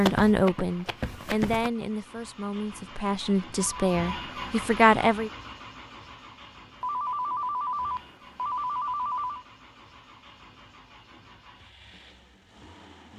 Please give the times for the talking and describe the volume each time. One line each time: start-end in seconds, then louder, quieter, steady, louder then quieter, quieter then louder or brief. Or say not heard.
0.0-5.3 quieter then louder.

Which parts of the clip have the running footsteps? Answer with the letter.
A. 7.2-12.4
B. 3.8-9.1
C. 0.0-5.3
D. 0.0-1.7
D.